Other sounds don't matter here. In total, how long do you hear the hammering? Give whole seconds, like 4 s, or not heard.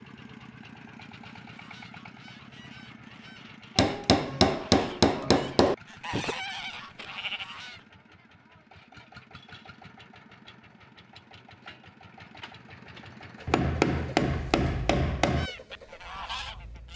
4 s.